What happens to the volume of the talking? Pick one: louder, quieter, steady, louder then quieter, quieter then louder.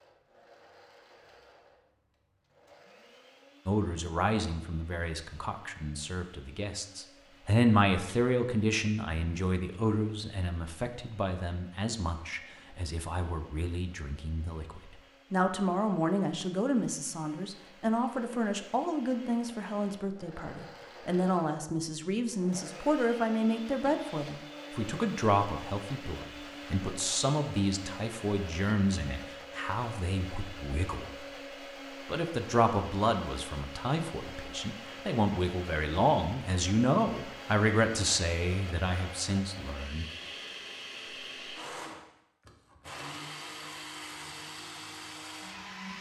steady.